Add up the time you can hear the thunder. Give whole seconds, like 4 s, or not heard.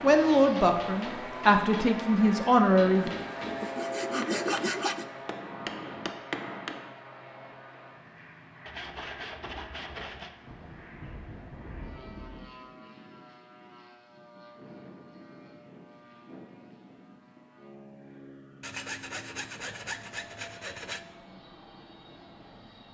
2 s.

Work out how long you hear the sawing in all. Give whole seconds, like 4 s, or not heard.
6 s.